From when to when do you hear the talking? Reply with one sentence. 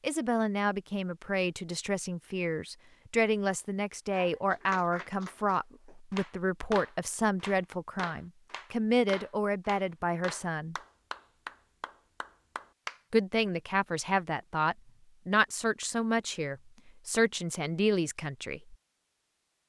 You can hear the talking from 0.0 to 10.8 s and from 13.1 to 18.8 s.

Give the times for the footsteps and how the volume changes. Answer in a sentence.
The footsteps can't be heard in this clip.